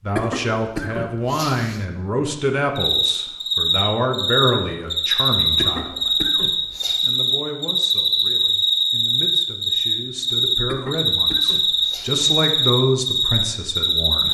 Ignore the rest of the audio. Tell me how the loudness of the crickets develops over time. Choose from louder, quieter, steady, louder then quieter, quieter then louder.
steady.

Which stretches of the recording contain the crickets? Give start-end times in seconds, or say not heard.
2.8-14.3.